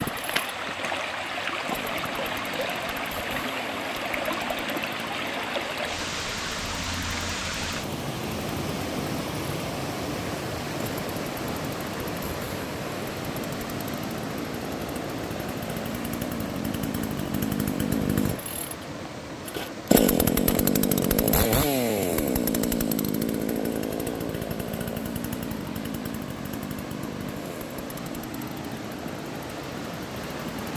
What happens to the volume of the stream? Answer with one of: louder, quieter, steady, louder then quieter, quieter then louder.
quieter.